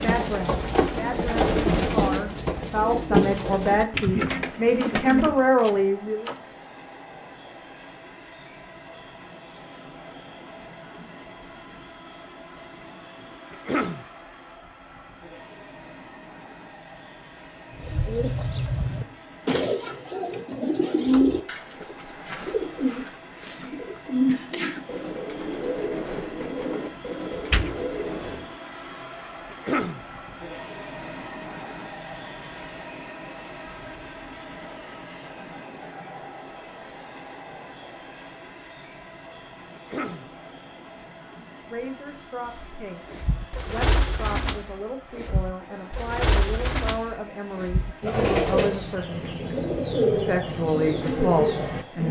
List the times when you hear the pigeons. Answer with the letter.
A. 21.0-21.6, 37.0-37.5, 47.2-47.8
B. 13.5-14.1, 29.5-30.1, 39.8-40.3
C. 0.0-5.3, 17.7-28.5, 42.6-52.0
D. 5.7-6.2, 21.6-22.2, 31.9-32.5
C.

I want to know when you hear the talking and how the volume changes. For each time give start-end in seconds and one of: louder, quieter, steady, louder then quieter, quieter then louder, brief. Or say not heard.
0.0-6.2 louder
41.6-49.3 louder
50.1-52.0 brief.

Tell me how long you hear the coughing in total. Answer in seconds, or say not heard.
2 s.